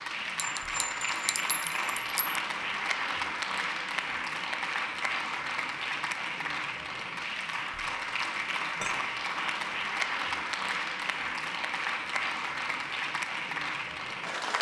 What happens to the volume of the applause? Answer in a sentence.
The loudness of the applause stays about the same.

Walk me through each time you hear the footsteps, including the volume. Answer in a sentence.
The footsteps can't be heard in this clip.